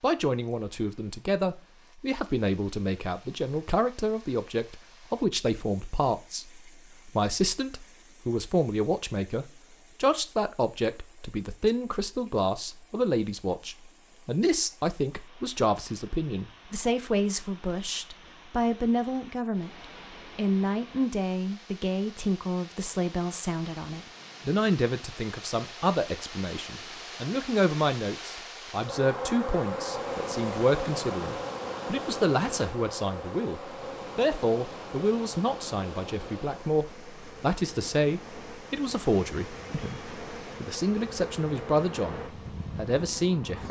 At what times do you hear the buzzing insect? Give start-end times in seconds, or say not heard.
28.8-43.6.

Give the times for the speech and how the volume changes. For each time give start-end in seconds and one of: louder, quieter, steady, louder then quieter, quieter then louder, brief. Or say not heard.
0.0-43.6 steady.